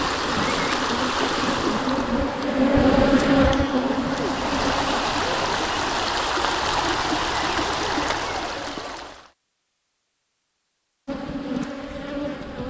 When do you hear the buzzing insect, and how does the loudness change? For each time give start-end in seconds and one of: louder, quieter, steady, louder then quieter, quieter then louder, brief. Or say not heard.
0.0-5.0 louder then quieter
11.1-12.6 brief.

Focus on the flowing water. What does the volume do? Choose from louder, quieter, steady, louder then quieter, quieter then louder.
quieter then louder.